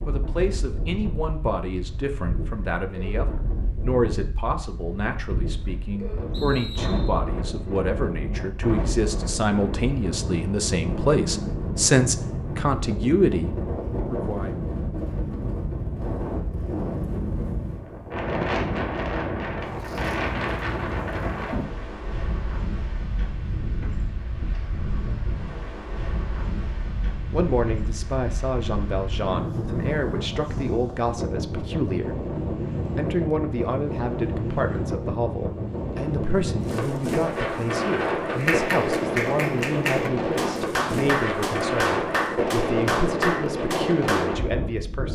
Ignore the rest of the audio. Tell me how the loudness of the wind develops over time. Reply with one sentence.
The loudness of the wind goes up.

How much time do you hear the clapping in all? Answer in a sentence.
The clapping can be heard for 6 seconds in total.